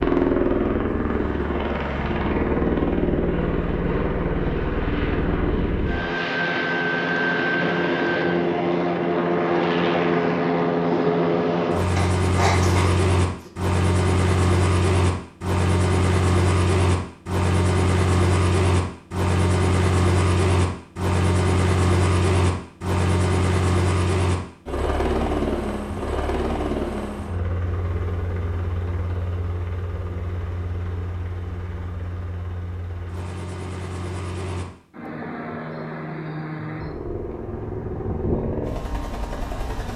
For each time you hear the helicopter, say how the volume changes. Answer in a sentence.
The helicopter can be heard from 0.0 to 39.9 s, getting quieter.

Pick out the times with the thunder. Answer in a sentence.
The thunder can't be heard in this clip.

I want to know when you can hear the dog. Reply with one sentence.
You can hear the dog from 11.9 to 13.5 s.